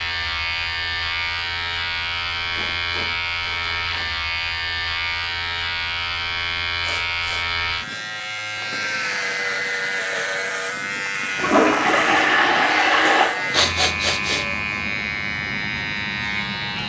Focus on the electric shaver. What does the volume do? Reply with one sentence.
The loudness of the electric shaver stays about the same.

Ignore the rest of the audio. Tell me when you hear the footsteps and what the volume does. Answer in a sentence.
You can't hear the footsteps here.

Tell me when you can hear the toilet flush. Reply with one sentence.
You can hear the toilet flush from 11.3 to 13.2 s.